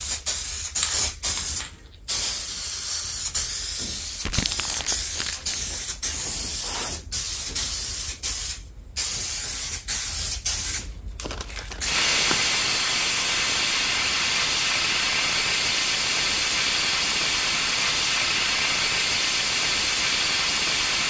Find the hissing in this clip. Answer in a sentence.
The hissing can be heard from 0.0 to 21.0 s.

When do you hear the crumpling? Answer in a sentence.
The crumpling can be heard from 4.2 to 5.7 s and from 11.2 to 12.6 s.